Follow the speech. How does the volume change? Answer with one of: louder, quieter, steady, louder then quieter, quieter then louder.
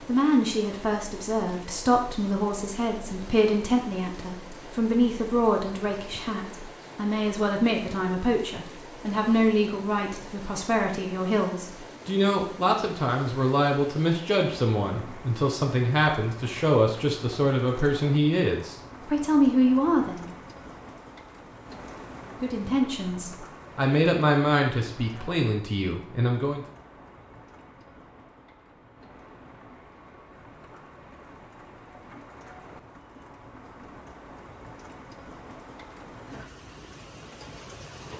steady.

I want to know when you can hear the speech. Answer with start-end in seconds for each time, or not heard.
0.1-20.3, 22.2-26.6.